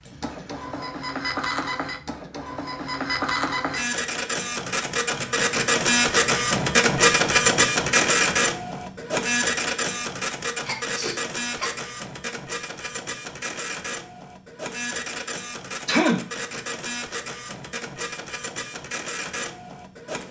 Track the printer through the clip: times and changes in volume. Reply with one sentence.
You can hear the printer from 0.0 to 20.2 s, getting louder then quieter.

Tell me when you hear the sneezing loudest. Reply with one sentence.
The volume of the sneezing peaks at 16 seconds.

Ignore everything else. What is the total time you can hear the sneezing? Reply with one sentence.
You can hear the sneezing for 2 seconds altogether.